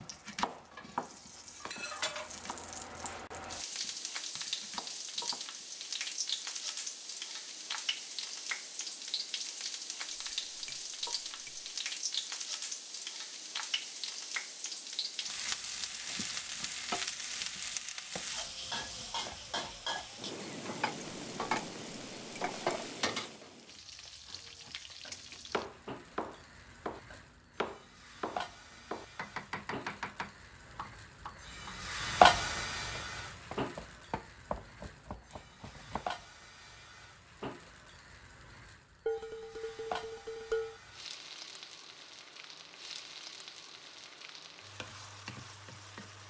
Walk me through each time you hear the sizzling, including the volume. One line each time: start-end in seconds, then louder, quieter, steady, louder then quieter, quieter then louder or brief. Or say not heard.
0.0-46.2 louder then quieter.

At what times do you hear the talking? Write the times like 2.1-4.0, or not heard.
not heard.